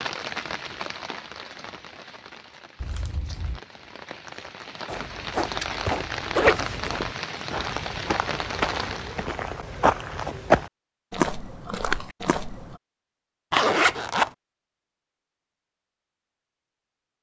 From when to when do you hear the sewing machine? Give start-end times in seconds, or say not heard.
not heard.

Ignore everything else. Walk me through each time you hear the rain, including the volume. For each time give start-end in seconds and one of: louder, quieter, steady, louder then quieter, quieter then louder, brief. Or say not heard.
0.0-9.4 quieter then louder.